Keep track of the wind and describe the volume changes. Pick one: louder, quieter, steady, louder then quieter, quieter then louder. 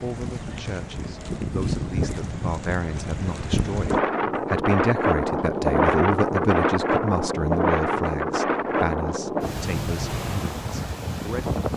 louder then quieter.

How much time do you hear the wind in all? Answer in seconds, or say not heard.
12 s.